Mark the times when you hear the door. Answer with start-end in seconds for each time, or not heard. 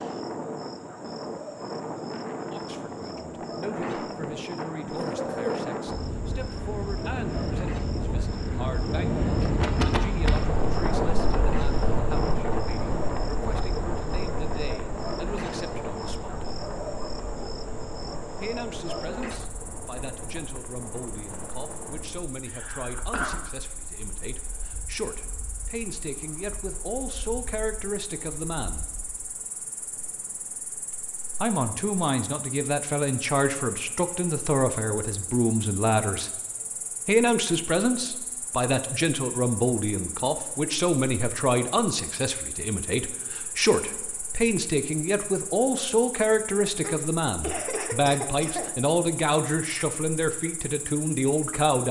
not heard.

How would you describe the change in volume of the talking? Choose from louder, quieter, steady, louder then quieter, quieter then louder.
louder.